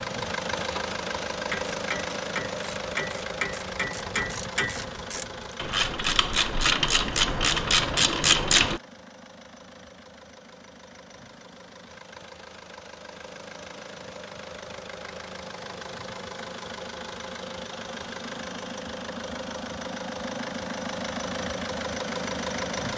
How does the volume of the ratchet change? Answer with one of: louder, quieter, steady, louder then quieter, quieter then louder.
louder.